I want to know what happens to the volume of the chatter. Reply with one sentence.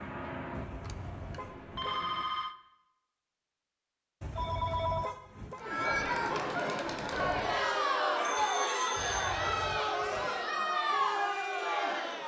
The loudness of the chatter stays about the same.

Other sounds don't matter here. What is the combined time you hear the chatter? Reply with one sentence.
You can hear the chatter for 7 seconds altogether.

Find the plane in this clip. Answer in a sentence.
You can hear the plane from 0.0 to 2.2 s.